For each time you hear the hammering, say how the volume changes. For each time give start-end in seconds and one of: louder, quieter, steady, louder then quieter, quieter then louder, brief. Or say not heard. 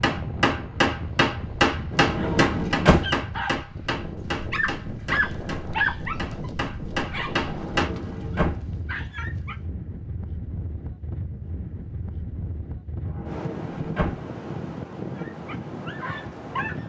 0.0-7.9 quieter then louder.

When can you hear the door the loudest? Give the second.
3 s.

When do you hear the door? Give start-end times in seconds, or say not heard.
1.9-3.1, 7.5-8.6, 13.0-14.2.